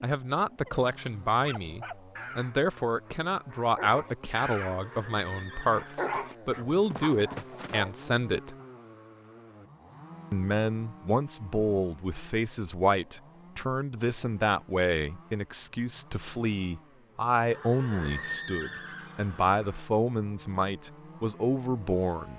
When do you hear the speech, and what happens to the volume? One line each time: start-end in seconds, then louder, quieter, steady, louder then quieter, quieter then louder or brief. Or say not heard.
0.0-8.6 steady
10.3-22.3 steady.